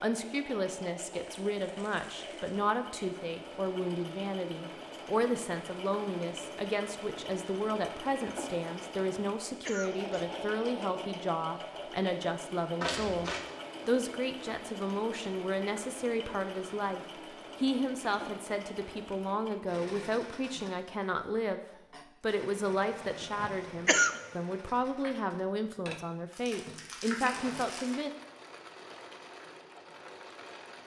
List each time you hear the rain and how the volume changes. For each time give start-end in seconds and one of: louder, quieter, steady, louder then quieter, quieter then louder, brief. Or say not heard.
not heard.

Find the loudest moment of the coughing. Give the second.
24 s.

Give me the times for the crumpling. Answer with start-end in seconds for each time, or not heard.
1.1-2.6, 12.8-13.4, 26.3-28.0.